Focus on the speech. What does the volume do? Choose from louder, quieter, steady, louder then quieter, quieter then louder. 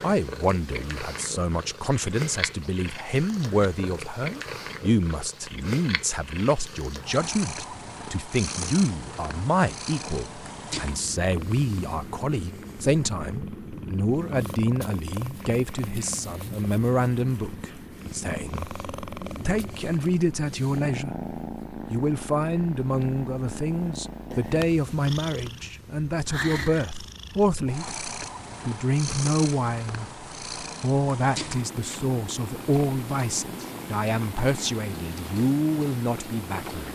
steady.